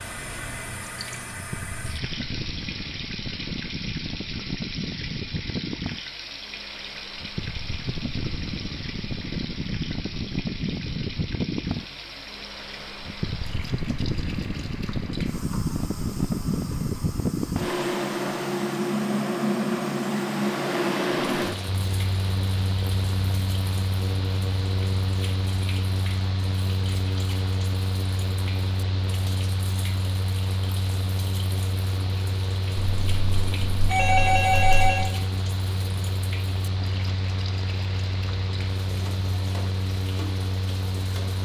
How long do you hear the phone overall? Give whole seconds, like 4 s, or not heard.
2 s.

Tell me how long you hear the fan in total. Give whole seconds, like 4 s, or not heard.
41 s.